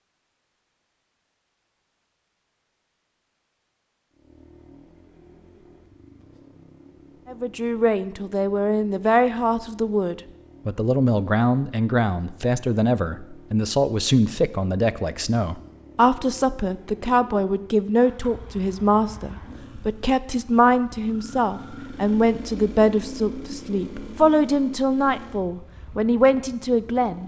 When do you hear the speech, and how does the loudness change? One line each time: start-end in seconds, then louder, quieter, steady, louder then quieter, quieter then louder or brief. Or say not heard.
7.2-27.2 steady.